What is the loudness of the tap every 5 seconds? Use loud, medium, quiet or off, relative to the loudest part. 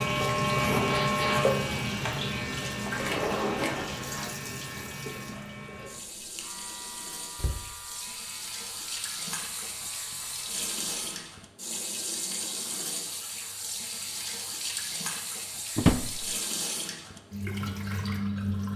loud, medium, loud, loud.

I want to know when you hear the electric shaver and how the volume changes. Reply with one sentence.
You can hear the electric shaver from 0.0 to 11.5 s, getting quieter.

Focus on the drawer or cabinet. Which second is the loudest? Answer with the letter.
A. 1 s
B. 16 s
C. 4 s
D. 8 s
B.